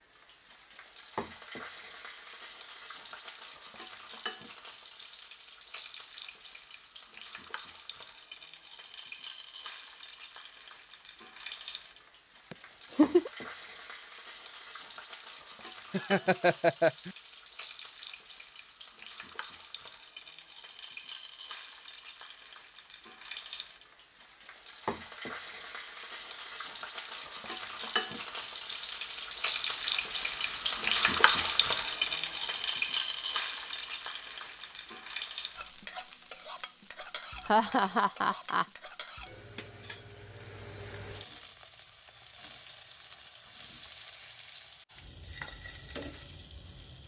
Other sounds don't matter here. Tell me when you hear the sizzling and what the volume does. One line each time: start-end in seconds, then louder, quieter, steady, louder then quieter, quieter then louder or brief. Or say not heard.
0.0-47.0 louder then quieter.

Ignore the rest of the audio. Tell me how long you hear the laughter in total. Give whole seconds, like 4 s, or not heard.
3 s.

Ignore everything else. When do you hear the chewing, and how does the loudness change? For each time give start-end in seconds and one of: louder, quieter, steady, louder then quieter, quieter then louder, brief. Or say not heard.
not heard.